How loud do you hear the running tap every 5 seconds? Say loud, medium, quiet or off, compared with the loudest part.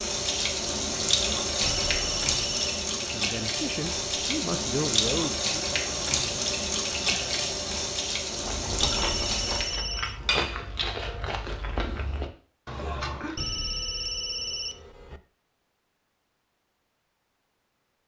loud, loud, off, off.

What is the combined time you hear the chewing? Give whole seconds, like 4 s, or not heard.
5 s.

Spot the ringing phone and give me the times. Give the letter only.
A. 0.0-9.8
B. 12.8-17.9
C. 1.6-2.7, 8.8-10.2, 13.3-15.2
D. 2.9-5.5
C.